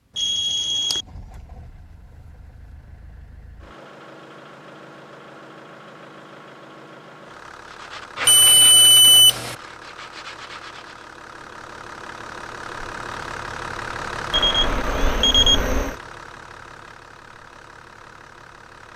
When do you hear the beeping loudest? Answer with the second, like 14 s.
9 s.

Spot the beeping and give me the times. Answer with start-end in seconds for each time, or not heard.
0.1-1.1, 8.2-9.6, 14.3-15.9.